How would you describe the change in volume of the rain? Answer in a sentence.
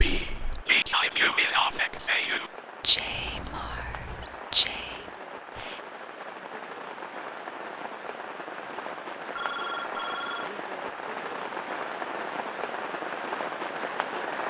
The loudness of the rain goes up.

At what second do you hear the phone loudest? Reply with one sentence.
The volume of the phone peaks at 10 seconds.